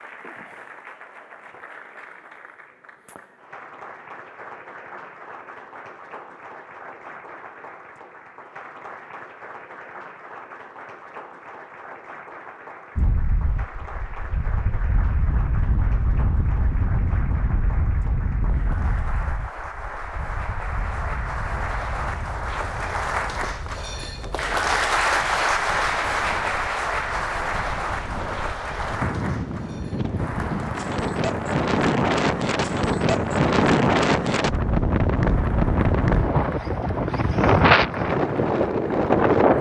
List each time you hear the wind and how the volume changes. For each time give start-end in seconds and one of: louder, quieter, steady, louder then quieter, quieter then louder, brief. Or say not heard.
12.9-39.5 quieter then louder.